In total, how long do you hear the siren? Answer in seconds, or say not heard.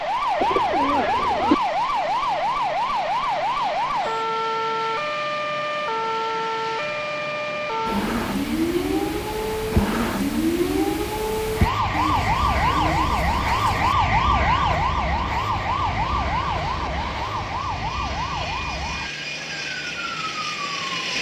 21 s.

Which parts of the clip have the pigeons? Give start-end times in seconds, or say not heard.
0.4-1.6, 11.9-13.9.